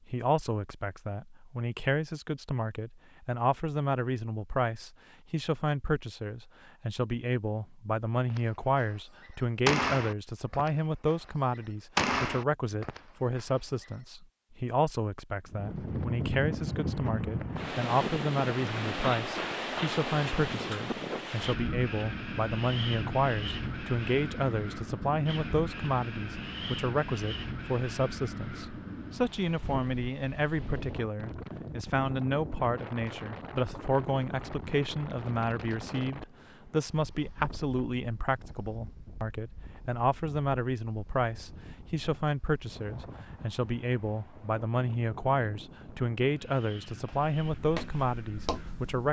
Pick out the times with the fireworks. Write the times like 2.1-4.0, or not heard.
8.3-13.8.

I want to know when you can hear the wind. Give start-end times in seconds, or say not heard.
15.4-49.0.